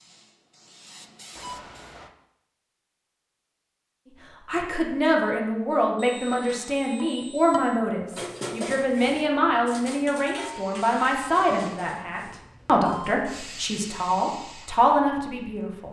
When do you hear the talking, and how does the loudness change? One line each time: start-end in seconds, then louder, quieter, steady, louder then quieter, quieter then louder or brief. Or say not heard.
4.5-15.8 steady.